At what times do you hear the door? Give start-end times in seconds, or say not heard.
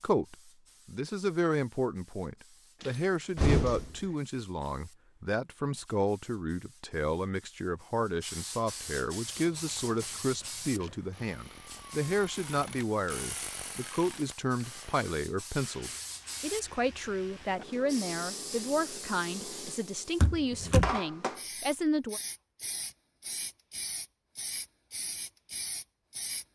2.8-3.9, 20.2-20.9.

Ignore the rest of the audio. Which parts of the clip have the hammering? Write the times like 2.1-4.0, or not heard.
not heard.